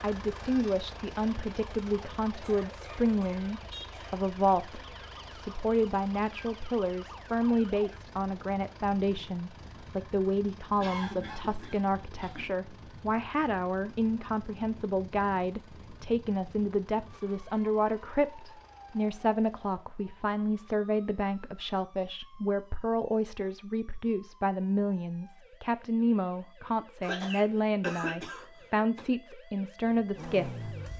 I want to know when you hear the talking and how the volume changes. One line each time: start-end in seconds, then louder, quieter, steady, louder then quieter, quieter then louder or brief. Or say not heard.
0.0-30.7 steady.